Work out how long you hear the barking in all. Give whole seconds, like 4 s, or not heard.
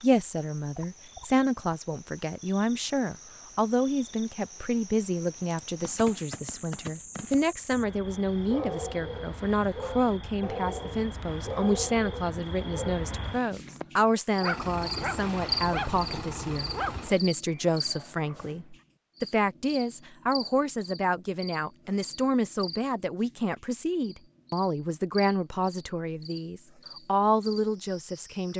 10 s.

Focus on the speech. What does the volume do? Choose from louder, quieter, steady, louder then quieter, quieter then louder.
steady.